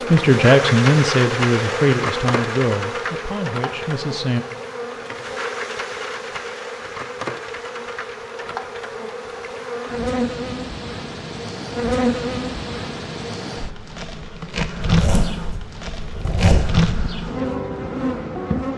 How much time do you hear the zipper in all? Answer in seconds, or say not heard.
2 s.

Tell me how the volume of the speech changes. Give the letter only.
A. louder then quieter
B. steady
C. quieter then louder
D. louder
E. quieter
E.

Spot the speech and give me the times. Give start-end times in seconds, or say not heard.
0.1-4.5.